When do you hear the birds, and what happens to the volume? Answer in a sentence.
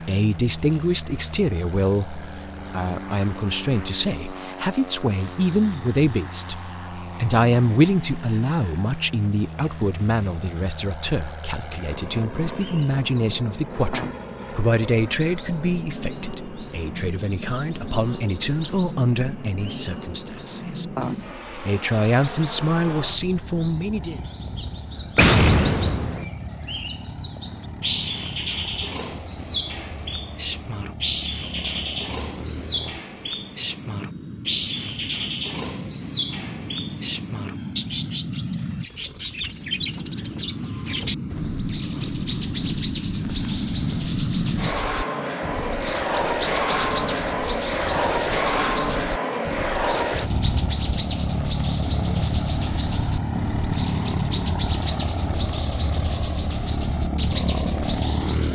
You can hear the birds from 12.4 to 58.5 s, getting louder.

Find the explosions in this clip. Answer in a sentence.
The explosions can be heard from 25.1 to 26.2 s.